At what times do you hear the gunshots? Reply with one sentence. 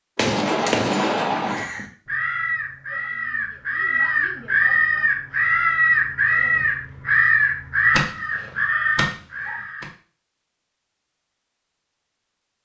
The gunshots can be heard from 0.1 to 1.6 s.